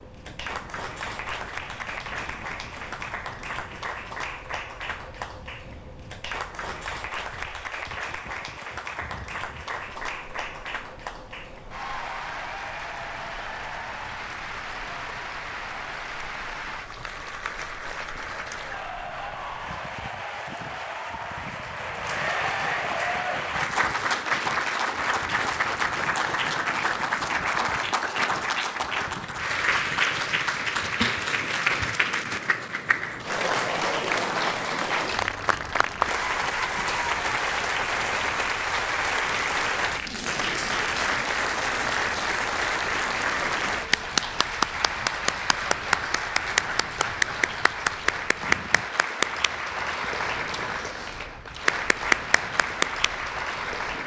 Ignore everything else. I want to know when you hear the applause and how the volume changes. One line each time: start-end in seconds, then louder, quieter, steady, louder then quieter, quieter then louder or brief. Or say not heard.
0.0-54.0 louder.